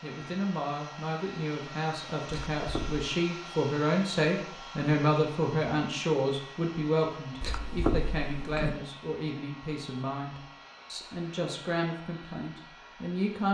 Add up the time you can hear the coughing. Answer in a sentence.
The coughing can be heard for 2 seconds in total.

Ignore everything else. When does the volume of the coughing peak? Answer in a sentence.
The loudest moment of the coughing is at 8 seconds.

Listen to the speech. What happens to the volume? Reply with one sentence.
The volume of the speech goes up, then down.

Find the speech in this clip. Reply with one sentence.
The speech can be heard from 0.0 to 13.4 s.